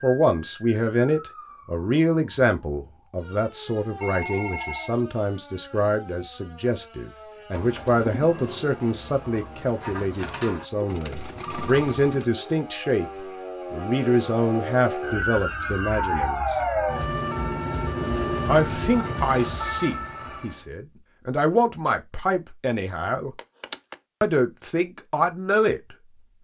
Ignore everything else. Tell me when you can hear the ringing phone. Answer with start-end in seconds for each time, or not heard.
4.0-5.0, 11.2-12.2, 23.4-23.9.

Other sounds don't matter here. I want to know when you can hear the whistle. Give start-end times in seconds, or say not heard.
not heard.